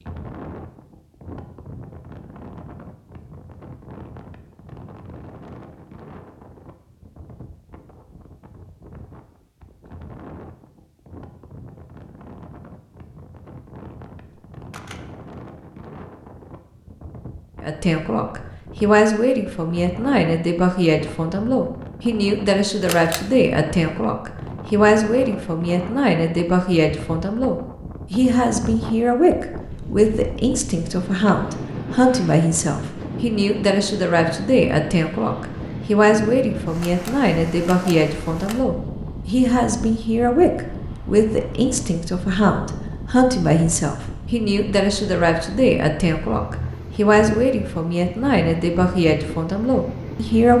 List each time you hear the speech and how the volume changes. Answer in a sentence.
The speech can be heard from 17.6 to 50.5 s, at a steady volume.